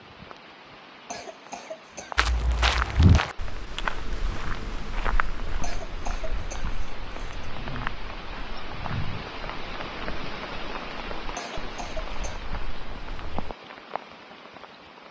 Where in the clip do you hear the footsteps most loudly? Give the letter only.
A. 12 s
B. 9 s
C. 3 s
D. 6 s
C.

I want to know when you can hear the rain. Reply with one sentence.
The rain can be heard from 0.0 to 15.0 s.